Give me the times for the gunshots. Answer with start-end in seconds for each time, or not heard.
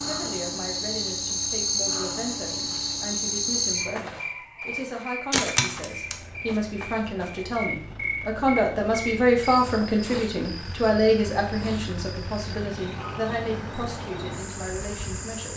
not heard.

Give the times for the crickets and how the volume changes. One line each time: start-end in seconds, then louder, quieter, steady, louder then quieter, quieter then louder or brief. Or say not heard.
0.0-15.5 quieter.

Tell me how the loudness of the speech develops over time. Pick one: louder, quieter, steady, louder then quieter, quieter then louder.
louder then quieter.